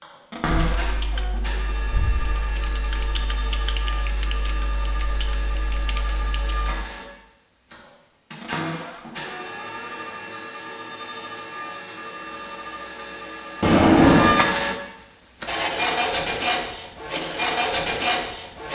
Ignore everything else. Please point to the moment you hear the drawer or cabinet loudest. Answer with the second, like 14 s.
14 s.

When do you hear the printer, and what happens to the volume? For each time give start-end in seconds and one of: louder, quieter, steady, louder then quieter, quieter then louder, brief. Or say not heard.
0.0-18.6 louder.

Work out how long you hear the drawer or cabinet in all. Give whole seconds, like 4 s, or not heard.
3 s.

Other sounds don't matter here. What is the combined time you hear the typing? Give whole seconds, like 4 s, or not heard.
6 s.